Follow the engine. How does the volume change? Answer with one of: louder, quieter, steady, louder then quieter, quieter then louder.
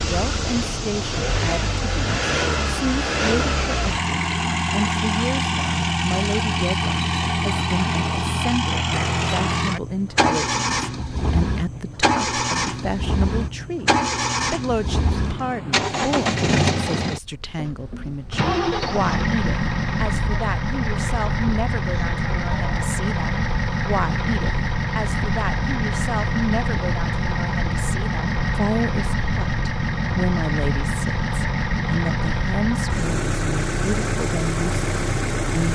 steady.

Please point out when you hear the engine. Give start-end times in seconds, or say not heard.
0.0-35.6.